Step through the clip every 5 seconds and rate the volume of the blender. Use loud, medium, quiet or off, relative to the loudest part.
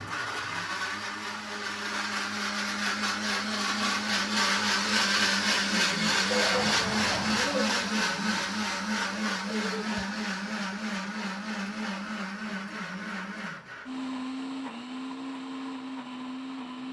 loud, loud, medium, medium.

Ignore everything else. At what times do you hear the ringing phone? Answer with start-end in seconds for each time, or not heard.
6.5-7.5.